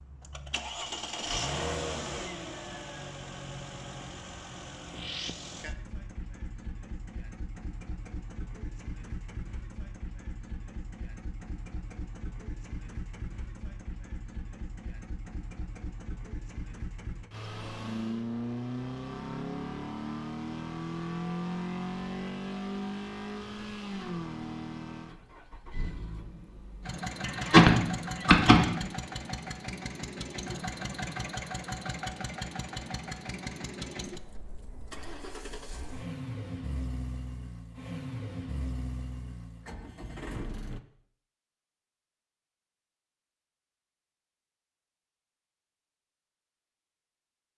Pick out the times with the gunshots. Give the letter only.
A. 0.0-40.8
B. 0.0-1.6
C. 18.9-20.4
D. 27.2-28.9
D.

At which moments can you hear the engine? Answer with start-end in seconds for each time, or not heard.
0.0-40.8.